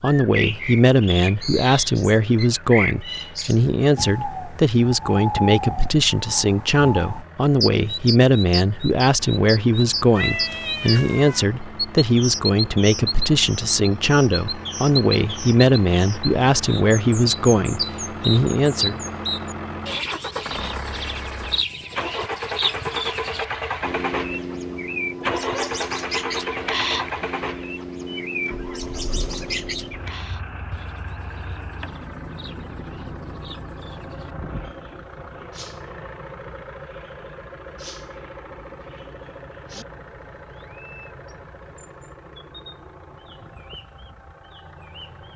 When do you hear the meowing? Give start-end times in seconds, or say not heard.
10.2-11.4, 25.2-25.7.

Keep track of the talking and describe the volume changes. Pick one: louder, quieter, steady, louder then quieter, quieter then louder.
steady.